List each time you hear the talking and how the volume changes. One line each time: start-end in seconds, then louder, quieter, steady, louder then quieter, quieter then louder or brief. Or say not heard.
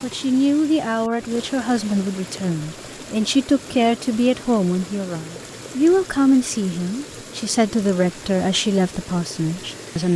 0.0-10.1 steady.